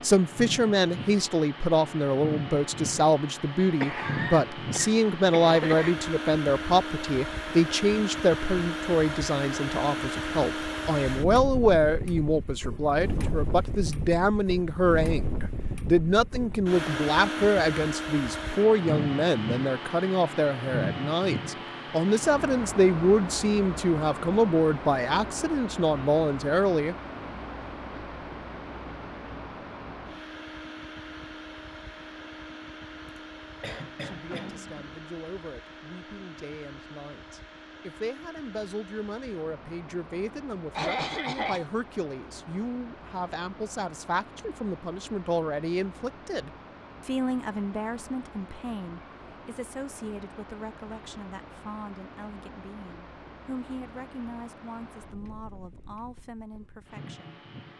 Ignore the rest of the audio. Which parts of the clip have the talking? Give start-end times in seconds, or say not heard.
0.0-26.9, 34.0-57.4.